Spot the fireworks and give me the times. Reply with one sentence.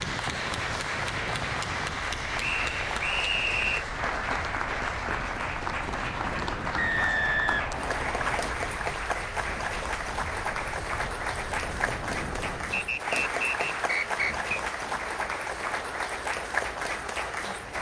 You can't hear the fireworks here.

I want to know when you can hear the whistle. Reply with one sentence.
The whistle can be heard from 2.4 to 3.9 s, from 6.8 to 8.3 s and from 12.7 to 14.3 s.